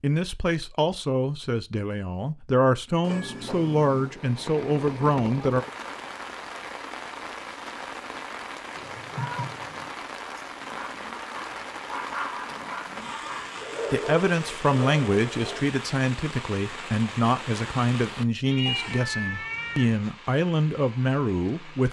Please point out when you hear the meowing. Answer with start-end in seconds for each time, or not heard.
3.0-4.2, 8.8-9.9, 18.4-19.9.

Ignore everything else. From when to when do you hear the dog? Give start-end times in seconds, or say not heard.
10.6-15.7.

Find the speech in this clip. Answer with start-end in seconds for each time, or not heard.
0.0-5.7, 13.9-21.8.